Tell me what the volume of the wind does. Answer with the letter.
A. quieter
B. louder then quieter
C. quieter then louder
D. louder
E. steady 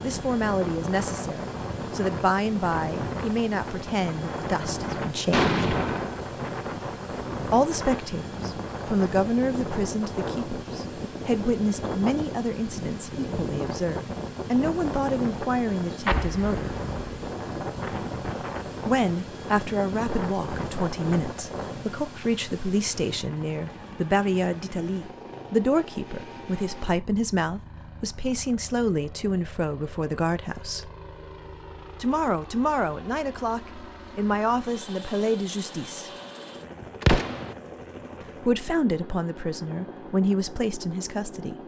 E.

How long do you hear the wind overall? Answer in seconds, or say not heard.
22 s.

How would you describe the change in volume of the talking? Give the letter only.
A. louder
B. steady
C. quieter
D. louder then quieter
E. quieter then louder
B.